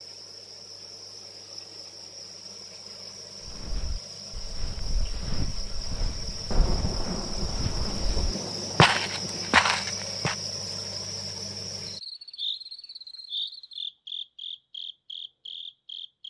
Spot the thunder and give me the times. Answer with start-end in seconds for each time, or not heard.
6.5-9.6.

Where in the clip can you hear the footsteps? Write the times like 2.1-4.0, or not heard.
3.5-10.3.